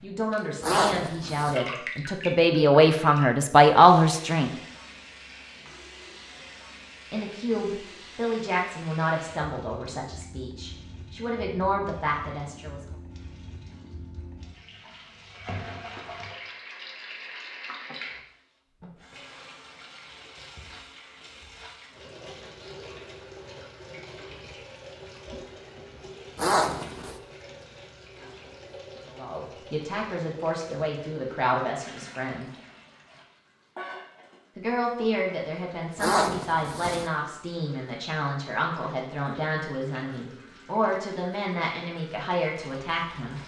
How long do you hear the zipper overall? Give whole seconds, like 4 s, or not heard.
3 s.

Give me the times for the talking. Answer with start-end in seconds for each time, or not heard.
0.0-4.5, 7.1-12.8, 29.1-32.5, 34.5-43.4.